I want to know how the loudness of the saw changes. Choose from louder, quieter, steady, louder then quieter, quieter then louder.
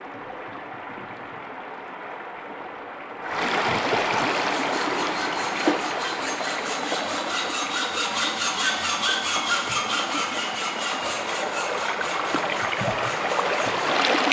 louder then quieter.